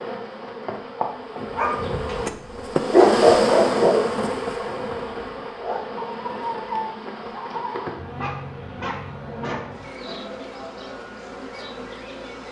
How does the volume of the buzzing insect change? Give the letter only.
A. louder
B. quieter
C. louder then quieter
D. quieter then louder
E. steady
C.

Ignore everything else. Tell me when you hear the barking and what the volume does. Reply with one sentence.
The barking can be heard from 1.6 to 10.2 s, getting quieter.